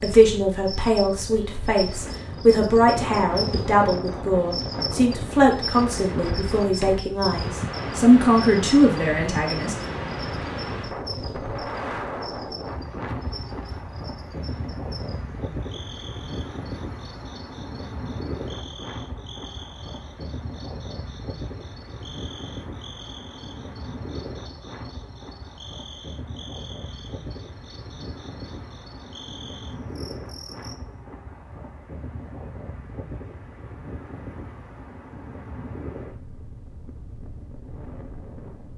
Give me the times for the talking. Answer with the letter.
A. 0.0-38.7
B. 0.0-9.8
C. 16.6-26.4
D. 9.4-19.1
B.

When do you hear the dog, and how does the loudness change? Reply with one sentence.
You can't hear the dog here.